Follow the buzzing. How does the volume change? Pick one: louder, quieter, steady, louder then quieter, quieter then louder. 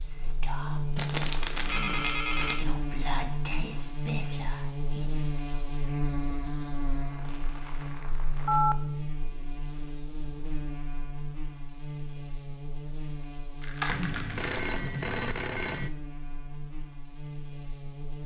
quieter.